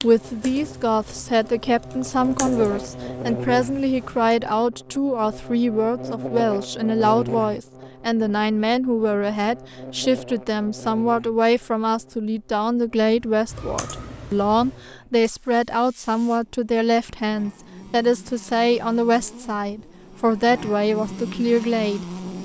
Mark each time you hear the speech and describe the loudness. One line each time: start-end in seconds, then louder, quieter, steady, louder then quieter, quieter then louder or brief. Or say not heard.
0.0-22.1 steady.